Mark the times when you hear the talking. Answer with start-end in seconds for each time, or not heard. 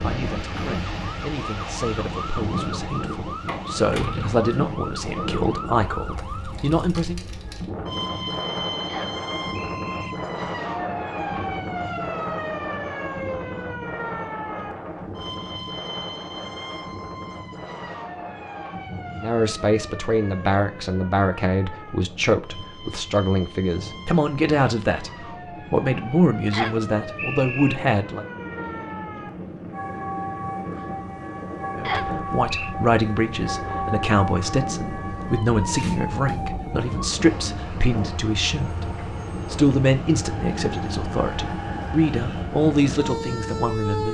0.0-7.2, 19.1-28.2, 31.8-44.0.